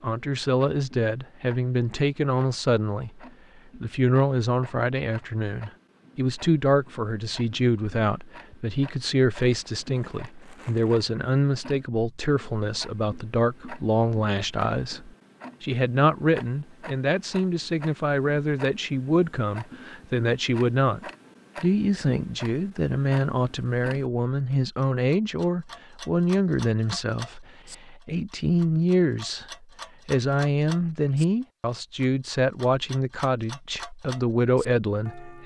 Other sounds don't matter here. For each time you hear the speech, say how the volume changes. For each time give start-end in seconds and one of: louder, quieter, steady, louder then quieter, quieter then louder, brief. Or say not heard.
0.0-35.4 steady.